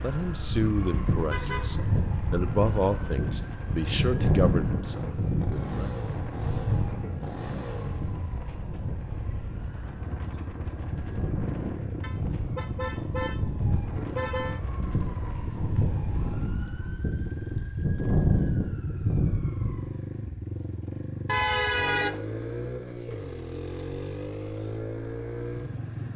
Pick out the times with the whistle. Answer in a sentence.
The whistle can't be heard in this clip.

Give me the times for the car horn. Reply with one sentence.
You can hear the car horn from 1.3 to 2.2 s, from 12.0 to 14.6 s and from 21.2 to 22.2 s.